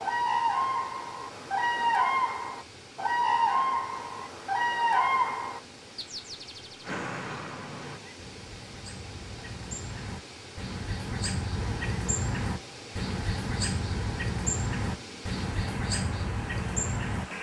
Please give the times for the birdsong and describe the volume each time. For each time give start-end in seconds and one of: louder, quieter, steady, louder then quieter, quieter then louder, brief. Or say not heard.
0.0-17.2 quieter then louder.